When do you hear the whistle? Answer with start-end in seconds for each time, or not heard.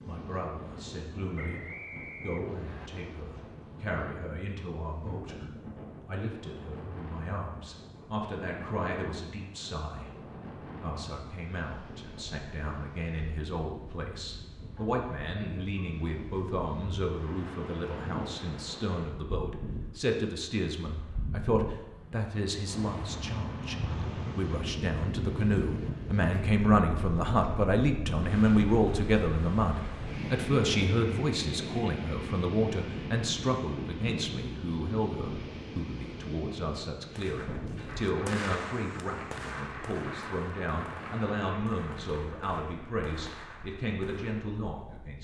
1.4-2.9.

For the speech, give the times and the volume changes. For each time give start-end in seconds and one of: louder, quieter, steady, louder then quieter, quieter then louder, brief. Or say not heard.
0.1-23.8 louder
24.4-45.1 quieter.